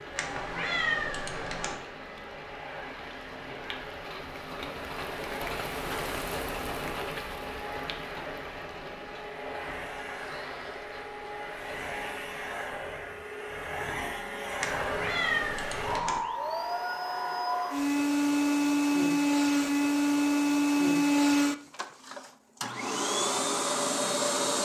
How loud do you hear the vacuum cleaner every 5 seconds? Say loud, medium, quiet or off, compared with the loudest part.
quiet, quiet, medium, loud, loud.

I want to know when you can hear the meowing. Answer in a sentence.
You can hear the meowing from 0.1 to 1.8 s and from 14.6 to 16.2 s.